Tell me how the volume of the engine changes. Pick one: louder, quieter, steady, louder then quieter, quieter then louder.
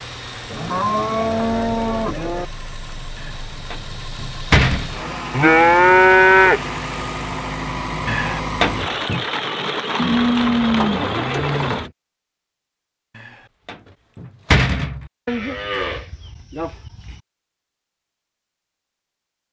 louder.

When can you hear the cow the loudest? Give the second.
6 s.